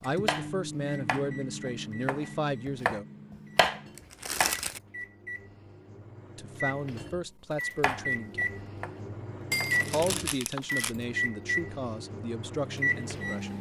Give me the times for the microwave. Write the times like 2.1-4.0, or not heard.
0.0-13.5.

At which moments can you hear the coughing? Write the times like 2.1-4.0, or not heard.
not heard.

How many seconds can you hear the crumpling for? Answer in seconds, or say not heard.
2 s.